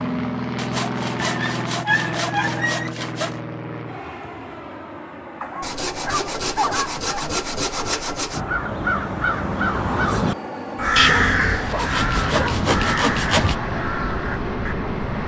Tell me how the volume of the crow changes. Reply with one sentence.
The volume of the crow goes down.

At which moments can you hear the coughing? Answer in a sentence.
The coughing can't be heard in this clip.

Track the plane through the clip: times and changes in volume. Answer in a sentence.
The plane can be heard from 0.0 to 15.2 s, getting quieter then louder.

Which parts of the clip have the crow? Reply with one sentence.
You can hear the crow from 8.3 to 14.8 s.